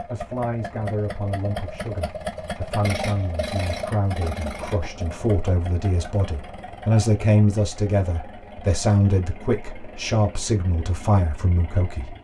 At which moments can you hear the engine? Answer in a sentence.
The engine can be heard from 0.0 to 12.1 s.